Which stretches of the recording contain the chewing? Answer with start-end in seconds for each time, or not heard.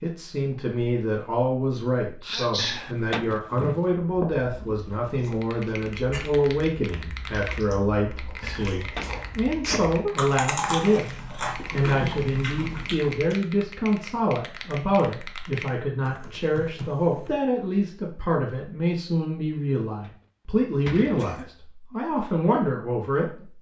4.0-13.4.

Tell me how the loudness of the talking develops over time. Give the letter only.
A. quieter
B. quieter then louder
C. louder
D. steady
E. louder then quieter
D.